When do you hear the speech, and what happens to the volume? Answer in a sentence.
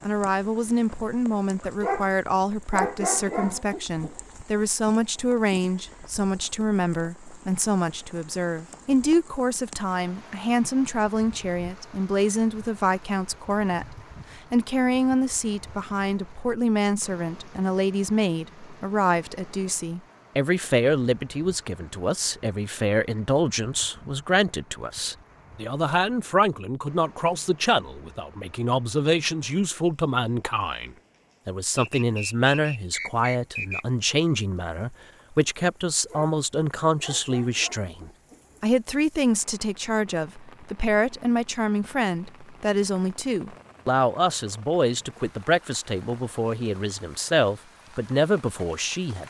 The speech can be heard from 0.0 to 49.2 s, at a steady volume.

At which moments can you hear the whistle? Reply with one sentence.
You can hear the whistle from 31.8 to 33.9 s.